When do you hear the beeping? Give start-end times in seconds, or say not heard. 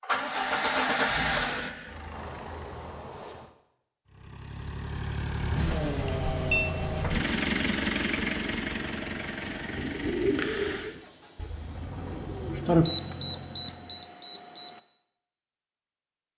2.1-3.5, 5.7-6.7, 12.8-14.8.